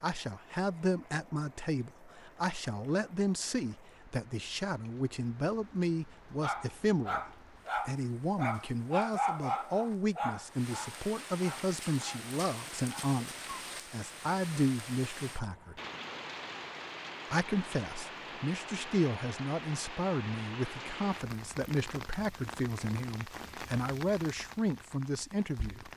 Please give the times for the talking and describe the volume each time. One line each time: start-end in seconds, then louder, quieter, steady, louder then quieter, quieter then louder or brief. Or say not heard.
0.0-15.8 steady
17.3-25.9 steady.